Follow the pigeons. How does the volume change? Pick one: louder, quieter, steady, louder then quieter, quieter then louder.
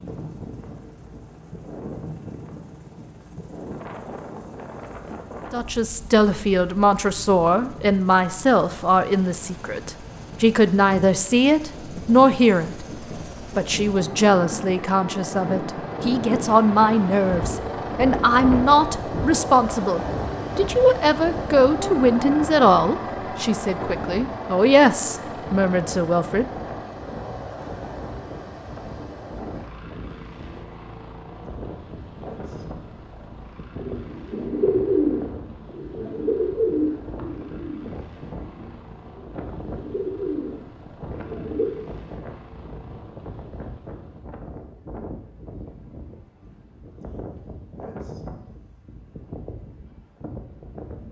quieter then louder.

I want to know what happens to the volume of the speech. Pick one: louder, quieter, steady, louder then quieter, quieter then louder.
steady.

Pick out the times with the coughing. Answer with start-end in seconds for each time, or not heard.
not heard.